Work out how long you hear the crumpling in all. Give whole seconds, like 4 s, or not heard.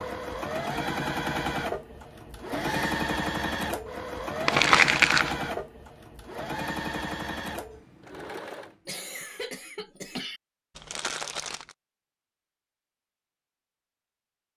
2 s.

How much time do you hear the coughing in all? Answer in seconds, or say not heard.
2 s.